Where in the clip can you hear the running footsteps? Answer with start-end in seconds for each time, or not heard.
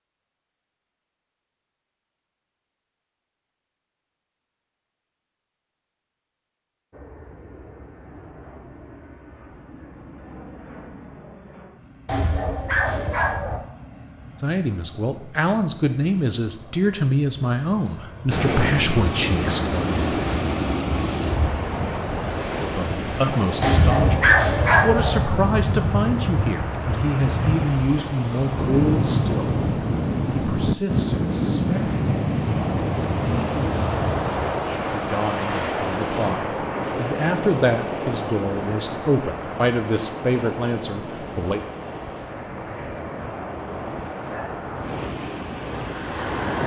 not heard.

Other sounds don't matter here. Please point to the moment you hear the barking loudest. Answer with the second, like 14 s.
24 s.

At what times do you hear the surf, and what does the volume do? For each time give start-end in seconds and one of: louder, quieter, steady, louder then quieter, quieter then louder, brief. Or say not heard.
18.3-46.6 quieter.